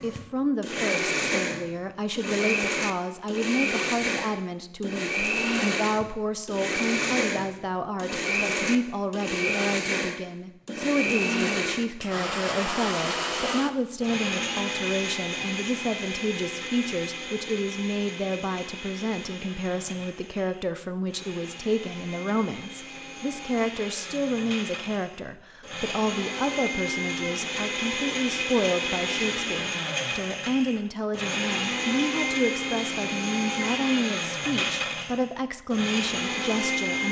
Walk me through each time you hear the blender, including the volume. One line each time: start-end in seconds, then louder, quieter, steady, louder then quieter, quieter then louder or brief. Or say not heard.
0.0-37.0 quieter then louder.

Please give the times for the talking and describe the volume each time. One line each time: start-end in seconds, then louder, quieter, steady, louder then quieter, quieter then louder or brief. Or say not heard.
0.0-37.0 steady.